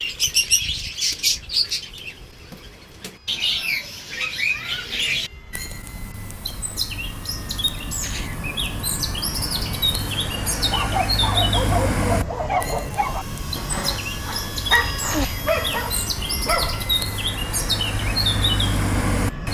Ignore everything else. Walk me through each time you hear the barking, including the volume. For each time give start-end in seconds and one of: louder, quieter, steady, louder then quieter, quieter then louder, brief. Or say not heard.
10.6-16.9 quieter then louder.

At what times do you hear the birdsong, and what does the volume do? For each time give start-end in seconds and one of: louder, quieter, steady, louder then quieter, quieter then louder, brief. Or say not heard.
0.0-19.4 steady.